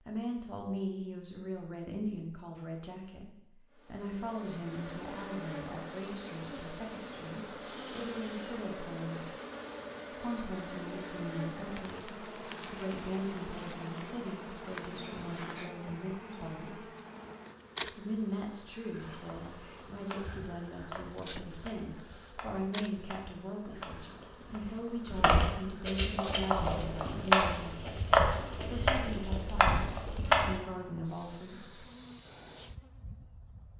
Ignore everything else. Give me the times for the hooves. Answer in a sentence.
The hooves can be heard from 19.3 to 30.6 s.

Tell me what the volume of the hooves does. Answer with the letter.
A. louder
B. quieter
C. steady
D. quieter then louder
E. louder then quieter
A.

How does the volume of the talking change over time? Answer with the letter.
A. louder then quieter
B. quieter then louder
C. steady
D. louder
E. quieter
C.